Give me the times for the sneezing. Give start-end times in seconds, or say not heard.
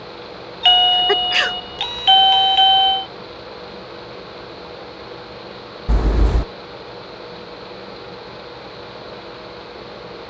0.9-1.6.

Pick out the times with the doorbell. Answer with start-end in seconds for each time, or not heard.
0.6-3.0, 5.8-6.5.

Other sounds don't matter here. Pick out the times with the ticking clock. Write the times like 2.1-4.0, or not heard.
not heard.